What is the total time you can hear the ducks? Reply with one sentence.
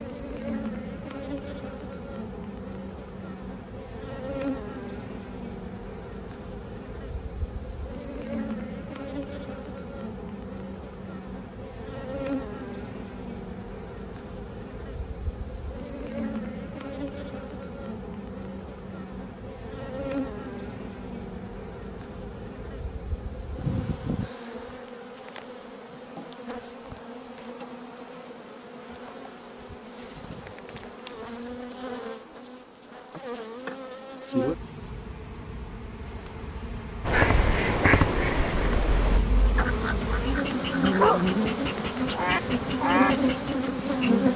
You can hear the ducks for 6 seconds altogether.